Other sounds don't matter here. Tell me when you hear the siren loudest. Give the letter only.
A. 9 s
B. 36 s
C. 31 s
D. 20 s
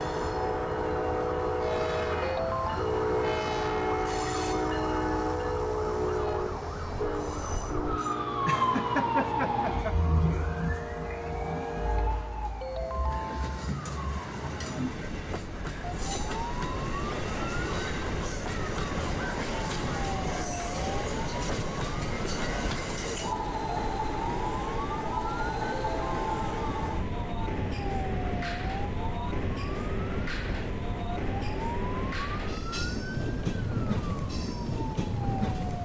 A.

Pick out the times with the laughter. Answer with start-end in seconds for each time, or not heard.
8.4-9.9.